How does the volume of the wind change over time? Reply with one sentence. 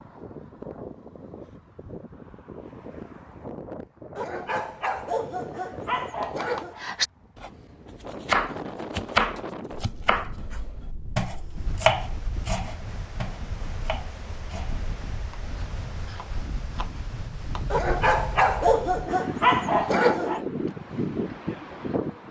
The loudness of the wind goes up.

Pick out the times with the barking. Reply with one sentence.
The barking can be heard from 4.2 to 6.8 s and from 17.7 to 20.4 s.